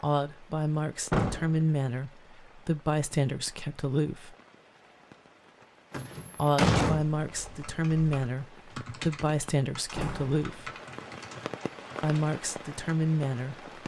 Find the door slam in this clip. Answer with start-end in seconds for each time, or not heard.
1.1-1.6, 5.9-7.0, 9.9-10.8.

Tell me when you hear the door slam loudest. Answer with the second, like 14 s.
7 s.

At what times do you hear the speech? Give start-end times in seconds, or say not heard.
0.0-4.3, 6.3-10.7, 12.0-13.7.